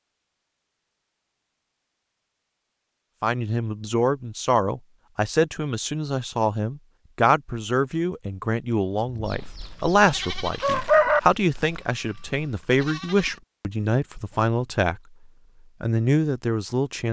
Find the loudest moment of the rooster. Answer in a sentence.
The volume of the rooster peaks at 11 seconds.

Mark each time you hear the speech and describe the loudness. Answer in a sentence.
You can hear the speech from 3.2 to 15.0 s, at a steady volume; and briefly from 15.8 to 17.0 s.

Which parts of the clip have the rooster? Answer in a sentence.
The rooster can be heard from 9.2 to 11.2 s.